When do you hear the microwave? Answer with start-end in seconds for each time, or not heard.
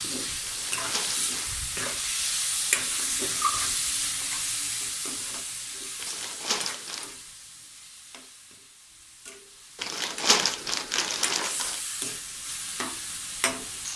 not heard.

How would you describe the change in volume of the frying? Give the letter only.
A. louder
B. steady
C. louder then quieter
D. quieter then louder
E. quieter
D.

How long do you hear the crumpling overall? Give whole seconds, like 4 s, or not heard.
4 s.